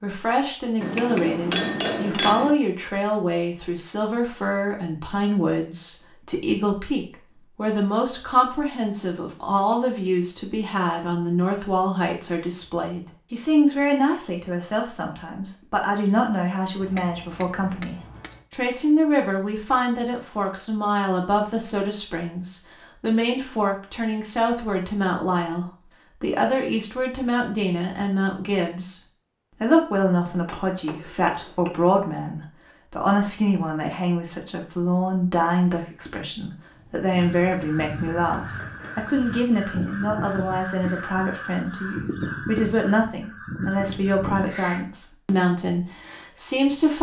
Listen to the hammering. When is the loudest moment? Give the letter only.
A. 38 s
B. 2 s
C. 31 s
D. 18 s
B.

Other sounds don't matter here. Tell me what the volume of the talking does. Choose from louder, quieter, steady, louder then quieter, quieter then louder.
steady.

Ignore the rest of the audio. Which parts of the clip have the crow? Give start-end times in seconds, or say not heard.
37.1-44.9.